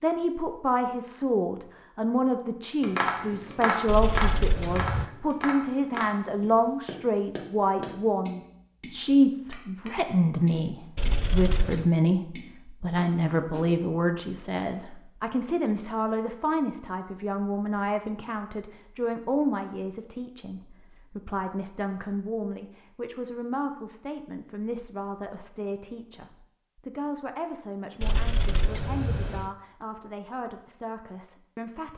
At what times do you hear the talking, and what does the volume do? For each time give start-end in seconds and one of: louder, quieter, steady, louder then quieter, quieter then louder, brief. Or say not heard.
0.0-31.9 quieter.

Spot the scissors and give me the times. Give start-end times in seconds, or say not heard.
3.9-5.1, 10.9-11.9, 28.0-29.5.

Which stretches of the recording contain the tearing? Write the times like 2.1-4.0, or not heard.
not heard.